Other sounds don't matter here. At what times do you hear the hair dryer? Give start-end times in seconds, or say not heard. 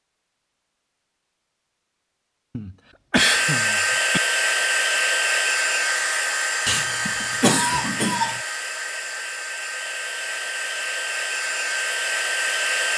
3.1-12.9.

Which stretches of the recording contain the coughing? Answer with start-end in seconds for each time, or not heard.
2.5-4.2, 6.7-8.4.